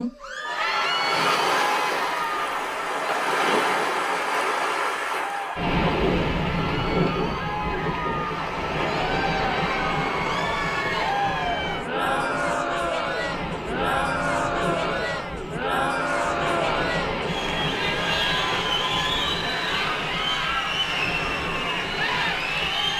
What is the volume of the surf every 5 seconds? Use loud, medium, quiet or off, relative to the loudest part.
loud, loud, medium, medium, medium.